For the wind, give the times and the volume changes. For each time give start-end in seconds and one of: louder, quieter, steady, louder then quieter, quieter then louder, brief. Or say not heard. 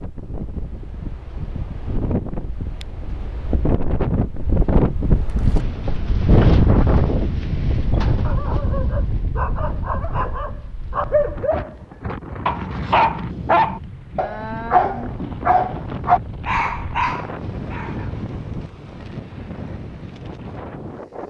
0.0-21.2 louder then quieter.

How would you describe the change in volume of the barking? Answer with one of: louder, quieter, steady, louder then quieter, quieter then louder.
louder.